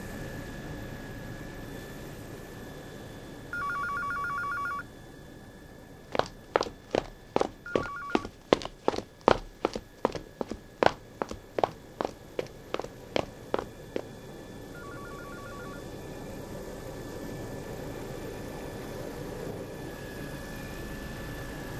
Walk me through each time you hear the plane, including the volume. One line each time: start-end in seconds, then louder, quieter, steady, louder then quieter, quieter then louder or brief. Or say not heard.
0.0-21.7 quieter then louder.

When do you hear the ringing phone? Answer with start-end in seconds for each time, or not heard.
3.5-4.8, 7.7-8.3, 14.7-15.8.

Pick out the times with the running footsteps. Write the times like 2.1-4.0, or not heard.
6.1-14.1.